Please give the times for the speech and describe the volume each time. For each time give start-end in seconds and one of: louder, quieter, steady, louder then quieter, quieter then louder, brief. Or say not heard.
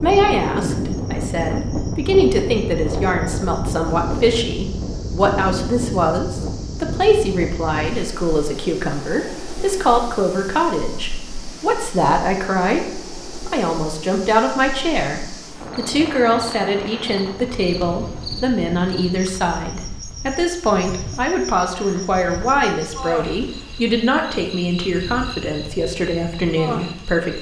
0.0-27.3 steady.